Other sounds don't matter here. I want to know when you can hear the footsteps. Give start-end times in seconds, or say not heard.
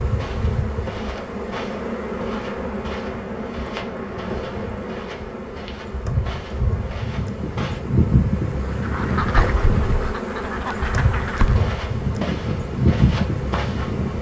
0.0-7.8, 11.3-14.1.